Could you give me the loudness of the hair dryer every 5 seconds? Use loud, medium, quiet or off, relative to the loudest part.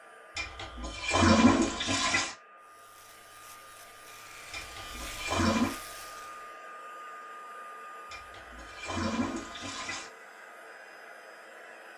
medium, loud, loud.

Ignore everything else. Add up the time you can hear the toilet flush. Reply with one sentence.
You can hear the toilet flush for 5 seconds altogether.